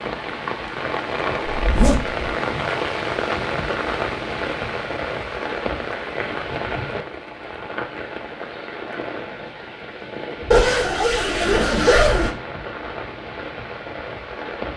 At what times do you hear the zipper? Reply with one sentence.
You can hear the zipper from 1.6 to 2.2 s and from 10.5 to 12.3 s.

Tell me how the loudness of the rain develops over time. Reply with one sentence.
The volume of the rain goes down.